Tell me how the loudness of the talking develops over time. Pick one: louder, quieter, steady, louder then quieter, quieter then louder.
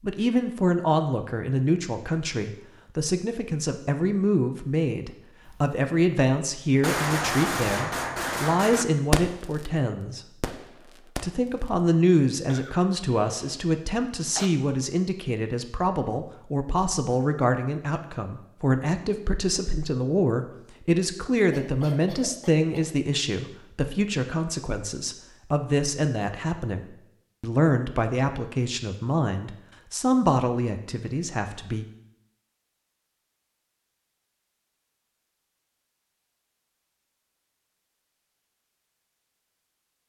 steady.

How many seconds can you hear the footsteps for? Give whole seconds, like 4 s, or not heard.
not heard.